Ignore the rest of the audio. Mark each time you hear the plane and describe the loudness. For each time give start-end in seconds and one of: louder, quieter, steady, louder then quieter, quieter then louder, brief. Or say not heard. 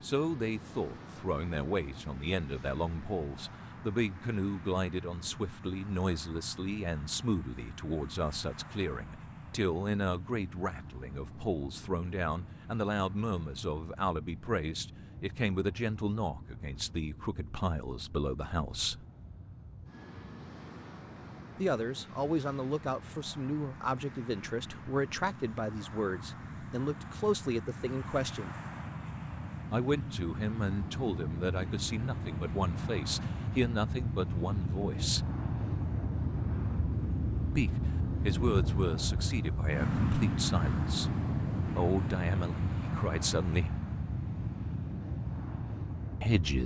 0.0-46.6 louder.